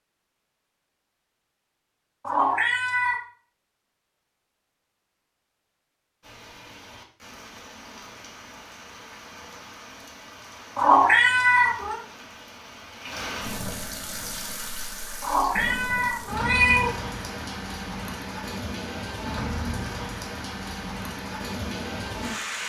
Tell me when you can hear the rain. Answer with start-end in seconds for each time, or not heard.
6.2-22.6.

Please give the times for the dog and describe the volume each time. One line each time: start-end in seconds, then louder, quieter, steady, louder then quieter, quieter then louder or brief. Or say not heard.
not heard.